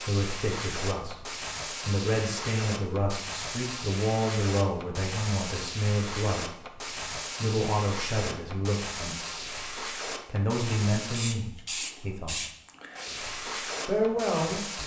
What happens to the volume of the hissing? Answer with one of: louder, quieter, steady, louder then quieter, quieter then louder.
steady.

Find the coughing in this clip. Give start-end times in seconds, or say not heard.
not heard.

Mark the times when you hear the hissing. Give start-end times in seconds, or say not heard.
0.0-14.8.